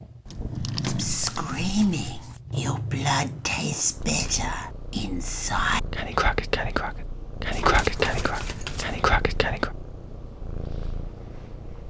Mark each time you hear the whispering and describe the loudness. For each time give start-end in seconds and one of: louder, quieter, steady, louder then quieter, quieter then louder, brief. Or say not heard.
0.9-9.7 steady.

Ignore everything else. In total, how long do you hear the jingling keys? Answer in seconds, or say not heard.
3 s.